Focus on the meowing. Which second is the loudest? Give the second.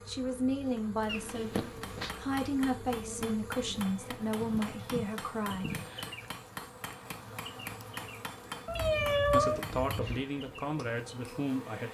9 s.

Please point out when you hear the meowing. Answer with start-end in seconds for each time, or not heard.
1.1-2.1, 8.7-10.2.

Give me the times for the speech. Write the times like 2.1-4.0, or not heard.
0.0-5.8, 9.3-11.8.